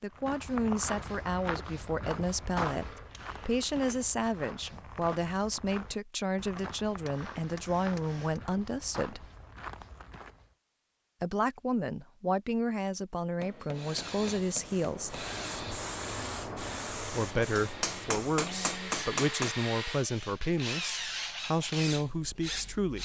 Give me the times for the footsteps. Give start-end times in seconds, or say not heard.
0.1-10.6.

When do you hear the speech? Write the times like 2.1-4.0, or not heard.
0.0-9.2, 11.2-15.2, 16.9-23.0.